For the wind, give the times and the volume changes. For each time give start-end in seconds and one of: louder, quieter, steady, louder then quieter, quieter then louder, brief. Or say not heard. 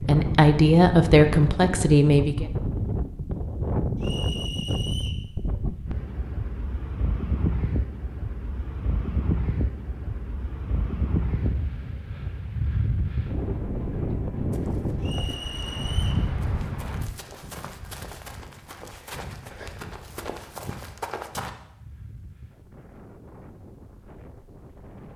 0.0-25.1 quieter.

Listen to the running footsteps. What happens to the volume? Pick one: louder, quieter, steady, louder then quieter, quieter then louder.
louder.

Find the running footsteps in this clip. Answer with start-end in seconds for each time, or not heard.
14.5-21.5.